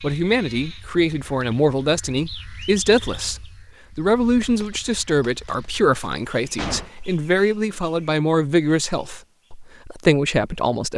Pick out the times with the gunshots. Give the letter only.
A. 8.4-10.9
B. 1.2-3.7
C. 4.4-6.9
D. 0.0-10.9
C.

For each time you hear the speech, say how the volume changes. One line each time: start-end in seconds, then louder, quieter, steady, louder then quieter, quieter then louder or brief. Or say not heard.
0.0-10.9 steady.